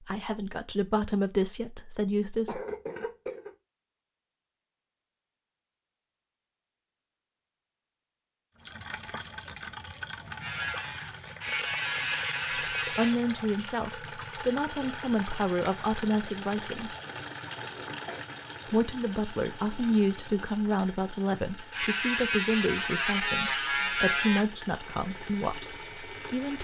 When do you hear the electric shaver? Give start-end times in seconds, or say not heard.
10.4-13.2, 21.7-26.6.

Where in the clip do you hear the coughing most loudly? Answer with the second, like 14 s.
3 s.